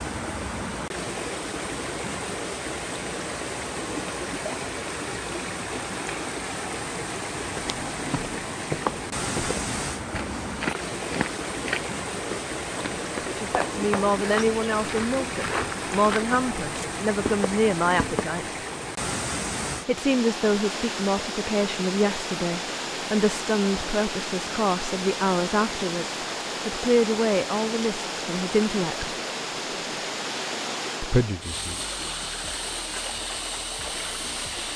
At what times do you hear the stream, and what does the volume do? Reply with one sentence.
You can hear the stream from 0.0 to 34.7 s, at a steady volume.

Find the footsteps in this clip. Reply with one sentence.
The footsteps can be heard from 7.5 to 18.4 s.